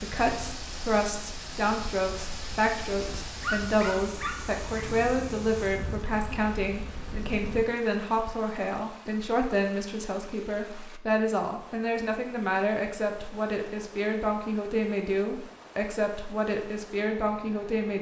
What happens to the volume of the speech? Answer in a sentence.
The loudness of the speech stays about the same.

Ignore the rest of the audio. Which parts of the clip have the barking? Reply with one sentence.
You can hear the barking from 3.4 to 5.0 s.